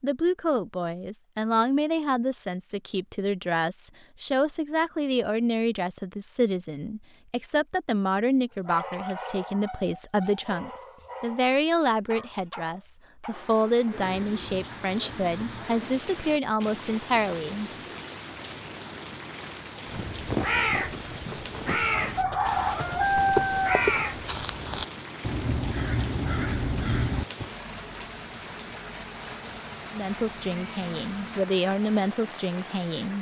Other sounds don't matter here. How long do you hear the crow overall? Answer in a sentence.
The crow can be heard for 8 seconds in total.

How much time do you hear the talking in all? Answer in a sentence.
You can hear the talking for 21 seconds altogether.